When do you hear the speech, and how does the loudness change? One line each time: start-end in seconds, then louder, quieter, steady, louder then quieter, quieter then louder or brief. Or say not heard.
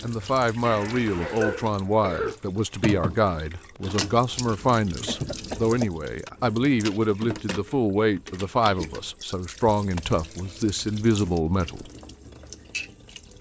0.0-11.9 steady.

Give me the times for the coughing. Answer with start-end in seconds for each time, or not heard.
0.7-2.4, 5.0-5.9, 9.8-10.3.